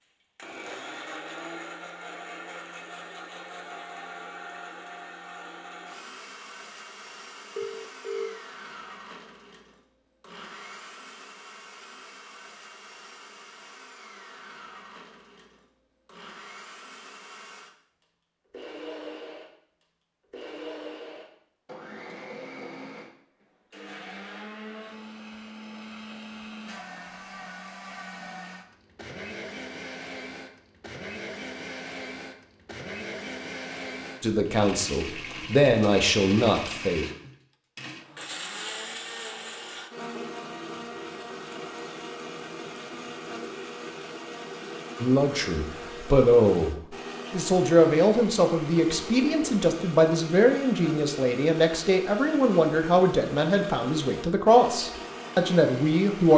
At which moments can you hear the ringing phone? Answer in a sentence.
The ringing phone can be heard from 7.5 to 8.4 s.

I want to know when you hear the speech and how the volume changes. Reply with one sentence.
You can hear the speech briefly from 34.2 to 37.0 s; and from 45.0 to 56.3 s, at a steady volume.